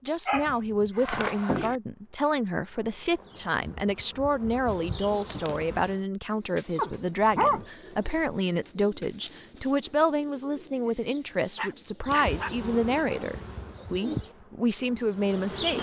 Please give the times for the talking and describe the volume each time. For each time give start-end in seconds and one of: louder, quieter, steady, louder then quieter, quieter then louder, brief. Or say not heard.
0.1-15.7 steady.